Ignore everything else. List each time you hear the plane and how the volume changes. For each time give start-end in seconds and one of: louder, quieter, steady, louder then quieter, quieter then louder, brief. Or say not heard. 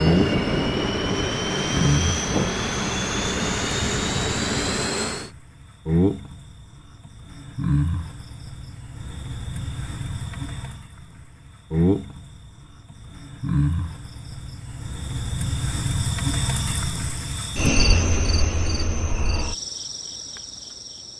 0.0-5.3 steady.